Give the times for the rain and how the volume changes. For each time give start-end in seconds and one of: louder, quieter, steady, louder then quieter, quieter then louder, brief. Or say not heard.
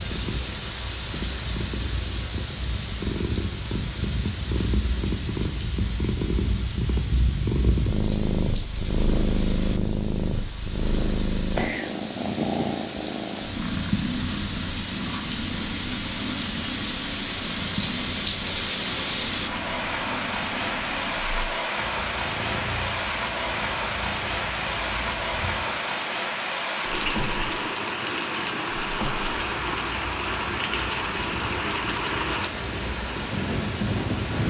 0.0-34.4 louder.